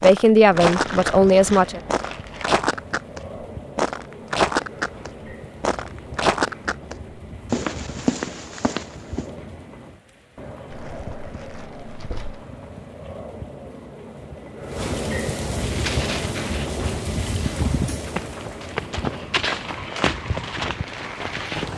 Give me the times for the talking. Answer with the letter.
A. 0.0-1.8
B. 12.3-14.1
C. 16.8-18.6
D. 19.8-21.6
A.